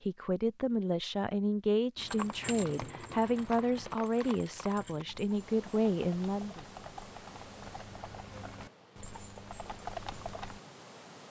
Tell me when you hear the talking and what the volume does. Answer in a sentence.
You can hear the talking from 0.0 to 6.7 s, at a steady volume.